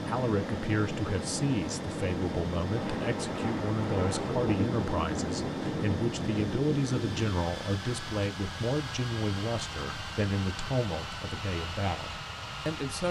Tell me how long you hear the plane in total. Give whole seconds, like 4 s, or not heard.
13 s.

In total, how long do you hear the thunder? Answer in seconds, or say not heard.
5 s.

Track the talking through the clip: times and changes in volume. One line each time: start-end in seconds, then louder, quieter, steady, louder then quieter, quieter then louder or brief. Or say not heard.
0.1-13.0 steady.